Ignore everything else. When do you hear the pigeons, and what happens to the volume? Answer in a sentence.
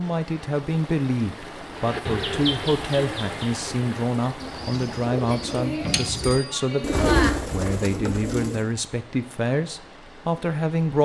The pigeons can be heard from 1.7 to 8.7 s, getting quieter then louder.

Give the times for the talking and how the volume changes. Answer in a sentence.
The talking can be heard from 0.0 to 11.0 s, at a steady volume.